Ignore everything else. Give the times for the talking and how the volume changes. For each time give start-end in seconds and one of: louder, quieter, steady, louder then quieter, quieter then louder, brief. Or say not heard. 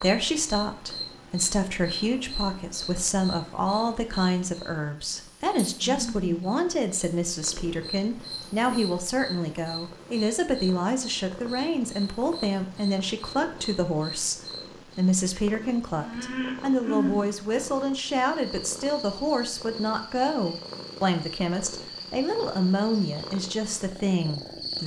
0.0-24.8 steady.